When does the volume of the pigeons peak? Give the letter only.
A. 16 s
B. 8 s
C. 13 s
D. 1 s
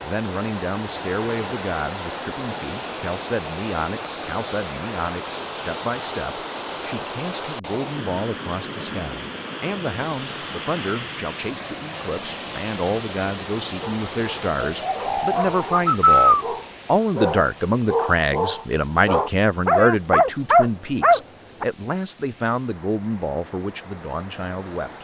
A.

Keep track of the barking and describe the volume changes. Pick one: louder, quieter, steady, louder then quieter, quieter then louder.
louder.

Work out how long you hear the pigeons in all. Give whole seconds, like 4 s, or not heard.
2 s.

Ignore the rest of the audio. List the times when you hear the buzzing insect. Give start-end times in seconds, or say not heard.
not heard.